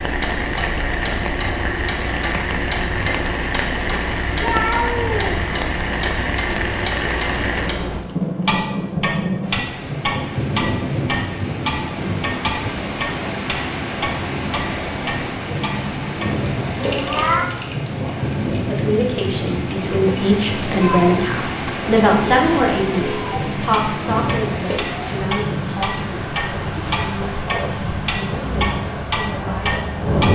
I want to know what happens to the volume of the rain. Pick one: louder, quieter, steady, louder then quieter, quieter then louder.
steady.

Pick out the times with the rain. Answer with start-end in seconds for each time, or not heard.
0.0-30.2.